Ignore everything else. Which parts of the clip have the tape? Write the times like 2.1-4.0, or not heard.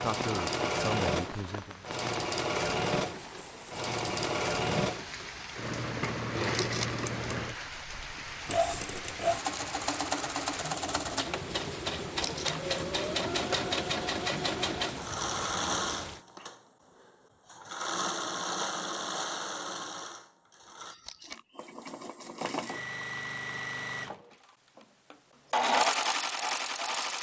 6.5-7.0, 12.2-12.6, 21.0-21.4.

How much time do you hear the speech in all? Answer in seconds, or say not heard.
2 s.